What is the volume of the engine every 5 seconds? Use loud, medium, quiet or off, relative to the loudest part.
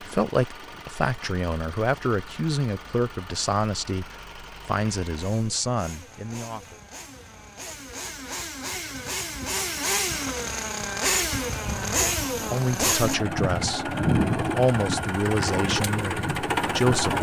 quiet, medium, loud, loud.